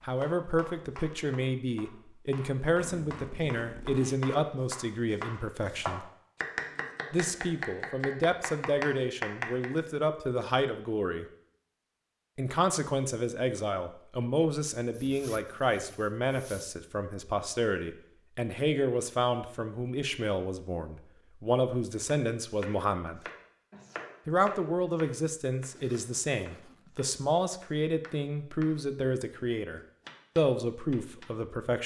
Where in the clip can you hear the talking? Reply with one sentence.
You can hear the talking from 0.0 to 6.1 s, from 7.1 to 11.2 s, from 12.3 to 23.2 s and from 24.2 to 31.8 s.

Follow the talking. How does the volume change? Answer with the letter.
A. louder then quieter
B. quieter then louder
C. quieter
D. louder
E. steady
E.